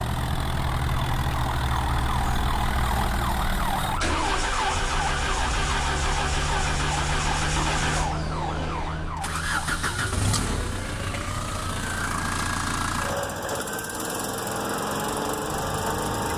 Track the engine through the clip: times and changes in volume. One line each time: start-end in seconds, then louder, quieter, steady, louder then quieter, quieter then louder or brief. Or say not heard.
0.0-16.3 steady.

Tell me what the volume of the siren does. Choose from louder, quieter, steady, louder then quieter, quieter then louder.
quieter.